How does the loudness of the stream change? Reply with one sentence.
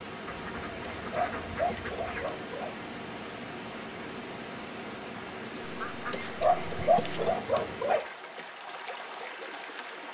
The loudness of the stream stays about the same.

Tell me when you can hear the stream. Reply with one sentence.
You can hear the stream from 0.0 to 10.0 s.